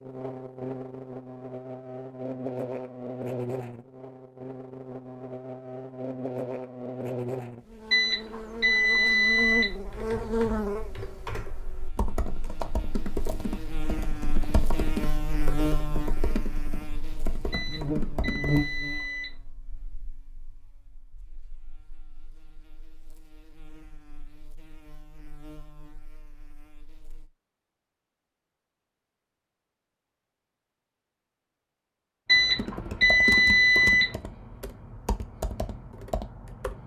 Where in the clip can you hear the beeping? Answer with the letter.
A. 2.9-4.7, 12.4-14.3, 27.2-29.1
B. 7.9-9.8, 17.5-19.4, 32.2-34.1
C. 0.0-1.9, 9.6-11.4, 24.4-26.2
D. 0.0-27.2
B.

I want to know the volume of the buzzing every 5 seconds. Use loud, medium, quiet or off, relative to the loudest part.
loud, loud, loud, loud, quiet, quiet, off, off.